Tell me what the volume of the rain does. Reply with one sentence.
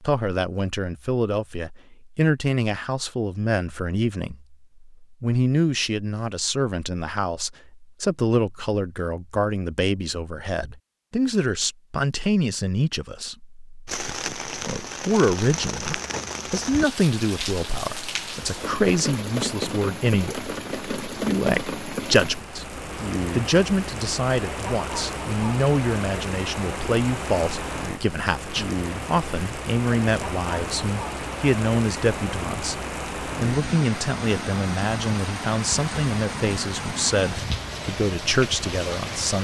The loudness of the rain stays about the same.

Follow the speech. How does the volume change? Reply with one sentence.
The loudness of the speech stays about the same.